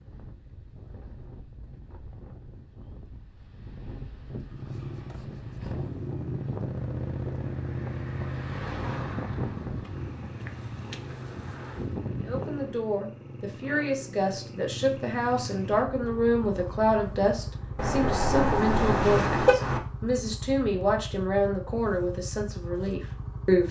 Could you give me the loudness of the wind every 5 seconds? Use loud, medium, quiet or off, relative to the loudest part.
medium, loud, loud, off, off.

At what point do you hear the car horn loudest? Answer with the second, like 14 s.
19 s.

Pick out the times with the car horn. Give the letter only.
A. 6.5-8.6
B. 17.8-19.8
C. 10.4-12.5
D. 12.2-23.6
B.